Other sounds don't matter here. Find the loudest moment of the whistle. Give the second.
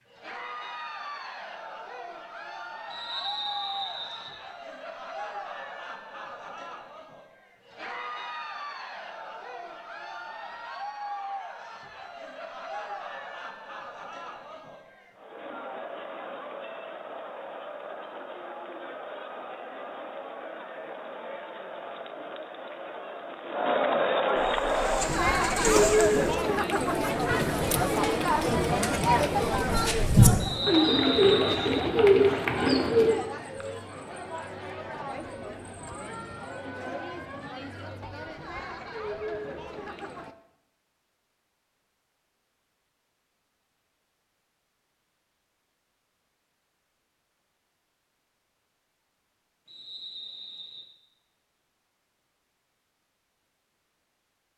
31 s.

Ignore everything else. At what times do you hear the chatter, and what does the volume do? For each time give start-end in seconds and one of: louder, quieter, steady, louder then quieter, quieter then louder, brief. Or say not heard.
0.1-40.4 louder then quieter.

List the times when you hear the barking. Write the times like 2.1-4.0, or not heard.
not heard.